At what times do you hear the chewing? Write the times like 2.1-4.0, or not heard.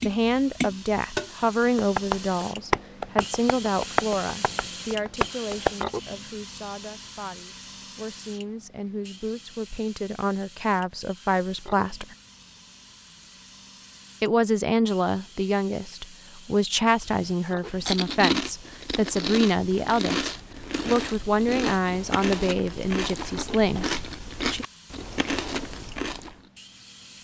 17.1-26.4.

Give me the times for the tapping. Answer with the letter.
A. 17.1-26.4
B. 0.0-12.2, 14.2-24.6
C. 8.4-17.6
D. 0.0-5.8
D.